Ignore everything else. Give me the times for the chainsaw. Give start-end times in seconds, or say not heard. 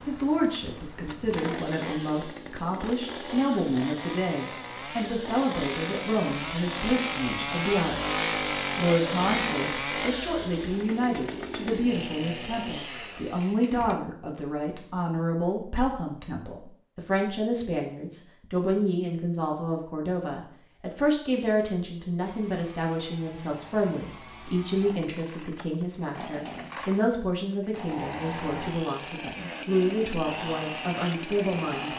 0.0-14.0, 22.2-31.9.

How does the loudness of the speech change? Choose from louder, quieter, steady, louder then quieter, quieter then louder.
steady.